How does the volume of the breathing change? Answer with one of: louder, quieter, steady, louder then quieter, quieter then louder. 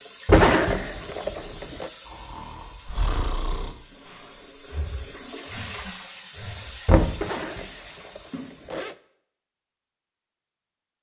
quieter.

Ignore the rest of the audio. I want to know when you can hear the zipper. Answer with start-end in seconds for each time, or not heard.
0.3-1.9, 7.2-8.9.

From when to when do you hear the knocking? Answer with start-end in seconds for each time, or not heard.
0.2-0.7, 6.8-7.2.